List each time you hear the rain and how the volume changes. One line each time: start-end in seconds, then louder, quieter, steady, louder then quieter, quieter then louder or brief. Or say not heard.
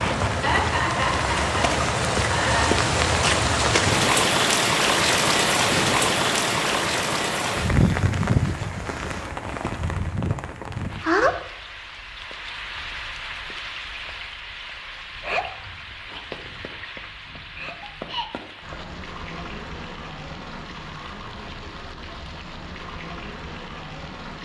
0.0-24.4 quieter.